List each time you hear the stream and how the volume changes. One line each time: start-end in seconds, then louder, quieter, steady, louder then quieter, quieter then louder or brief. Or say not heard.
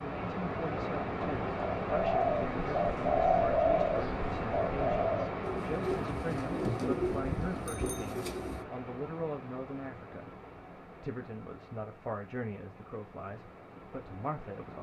0.0-14.7 quieter.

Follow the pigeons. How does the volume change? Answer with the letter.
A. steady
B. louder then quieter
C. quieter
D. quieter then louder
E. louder
C.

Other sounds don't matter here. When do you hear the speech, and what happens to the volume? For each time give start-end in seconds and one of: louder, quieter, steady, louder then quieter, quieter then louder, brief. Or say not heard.
0.0-14.7 steady.